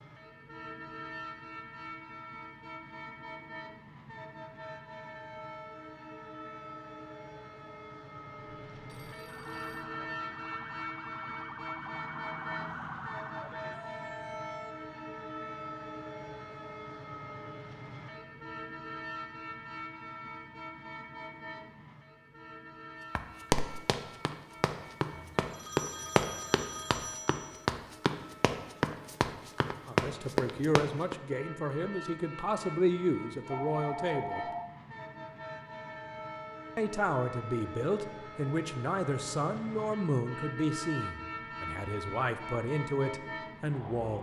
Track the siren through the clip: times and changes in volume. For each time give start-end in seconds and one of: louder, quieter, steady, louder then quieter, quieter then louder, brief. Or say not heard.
9.2-14.8 louder then quieter.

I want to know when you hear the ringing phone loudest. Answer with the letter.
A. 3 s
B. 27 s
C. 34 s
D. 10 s
C.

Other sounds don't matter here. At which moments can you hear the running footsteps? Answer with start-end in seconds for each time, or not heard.
23.1-31.1.